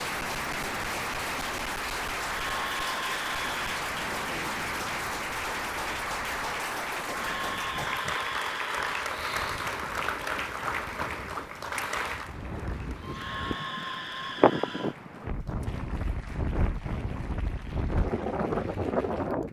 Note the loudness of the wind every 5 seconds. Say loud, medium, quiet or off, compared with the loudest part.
quiet, quiet, loud, loud.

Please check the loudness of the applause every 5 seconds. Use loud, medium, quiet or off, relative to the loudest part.
loud, loud, loud, quiet.